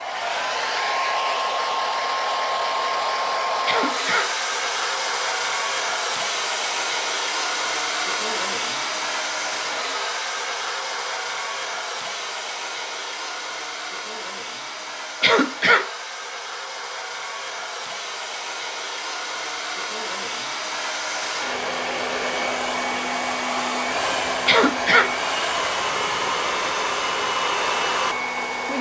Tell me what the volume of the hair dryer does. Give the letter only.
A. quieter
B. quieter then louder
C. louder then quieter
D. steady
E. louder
B.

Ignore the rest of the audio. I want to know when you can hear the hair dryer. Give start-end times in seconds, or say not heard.
0.0-28.7.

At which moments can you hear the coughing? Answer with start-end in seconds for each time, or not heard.
3.6-4.3, 15.2-15.9, 24.4-25.1.